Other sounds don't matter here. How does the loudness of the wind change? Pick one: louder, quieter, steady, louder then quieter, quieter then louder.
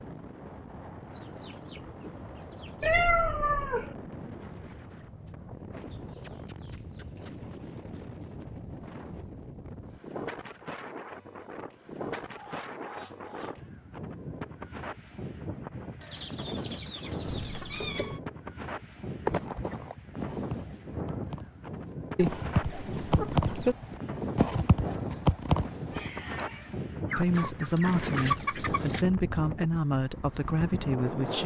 louder.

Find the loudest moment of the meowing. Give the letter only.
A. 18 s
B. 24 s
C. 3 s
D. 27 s
C.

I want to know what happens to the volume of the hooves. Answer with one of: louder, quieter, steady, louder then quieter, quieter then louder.
quieter then louder.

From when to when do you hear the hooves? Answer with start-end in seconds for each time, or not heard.
19.2-26.1.